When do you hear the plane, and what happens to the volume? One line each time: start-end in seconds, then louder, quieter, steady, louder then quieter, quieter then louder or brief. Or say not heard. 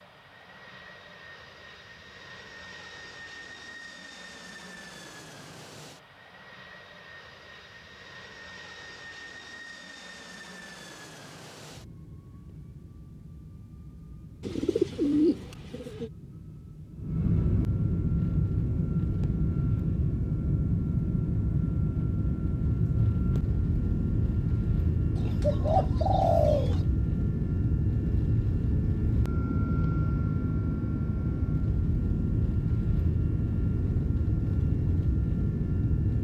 0.0-36.1 louder.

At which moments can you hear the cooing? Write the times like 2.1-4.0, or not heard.
14.4-16.1, 25.1-26.8.